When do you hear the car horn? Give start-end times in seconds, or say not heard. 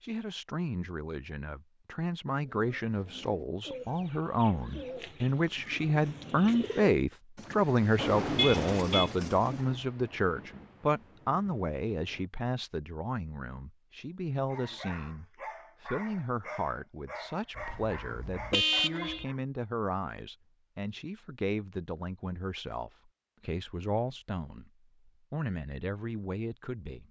8.3-9.1, 17.6-19.2.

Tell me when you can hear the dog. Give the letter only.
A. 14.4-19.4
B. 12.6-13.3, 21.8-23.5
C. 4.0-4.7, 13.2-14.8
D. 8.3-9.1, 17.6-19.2
A.